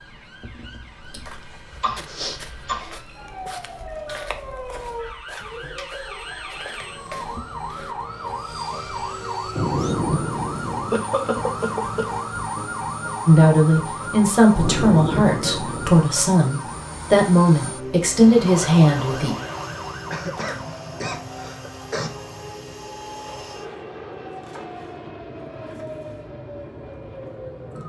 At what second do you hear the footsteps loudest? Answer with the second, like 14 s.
2 s.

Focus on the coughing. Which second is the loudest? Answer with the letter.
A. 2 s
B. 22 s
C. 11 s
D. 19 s
C.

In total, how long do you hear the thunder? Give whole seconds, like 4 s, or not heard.
3 s.